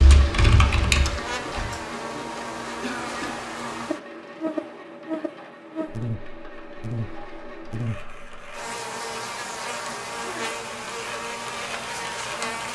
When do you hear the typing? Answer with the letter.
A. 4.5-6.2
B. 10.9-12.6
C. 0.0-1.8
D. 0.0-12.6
C.